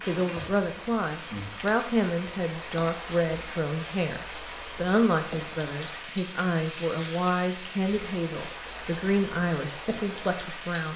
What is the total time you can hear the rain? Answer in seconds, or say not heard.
11 s.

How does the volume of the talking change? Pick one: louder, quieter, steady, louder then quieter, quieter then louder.
steady.